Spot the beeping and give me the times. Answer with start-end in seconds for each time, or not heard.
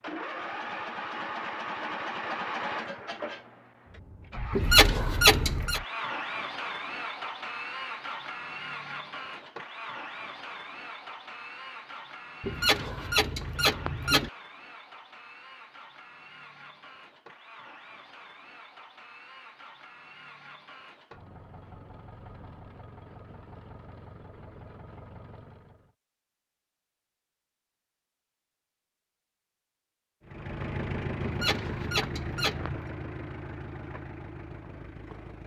not heard.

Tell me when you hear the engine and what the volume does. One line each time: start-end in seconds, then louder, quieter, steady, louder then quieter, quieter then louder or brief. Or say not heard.
0.0-25.9 quieter
30.2-35.4 quieter.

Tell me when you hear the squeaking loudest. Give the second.
5 s.